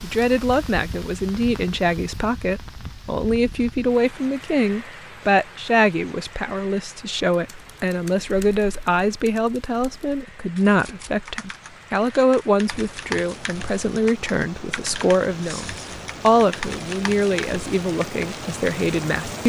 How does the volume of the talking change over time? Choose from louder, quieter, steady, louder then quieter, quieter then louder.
steady.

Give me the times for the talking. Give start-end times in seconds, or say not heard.
0.0-19.4.